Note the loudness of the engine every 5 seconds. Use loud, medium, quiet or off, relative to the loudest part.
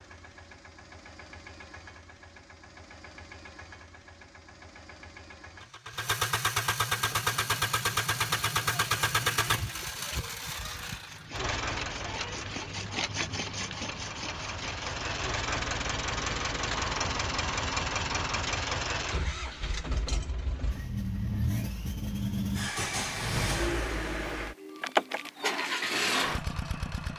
quiet, loud, medium, loud, loud, loud.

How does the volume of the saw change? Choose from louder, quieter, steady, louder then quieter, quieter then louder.
louder.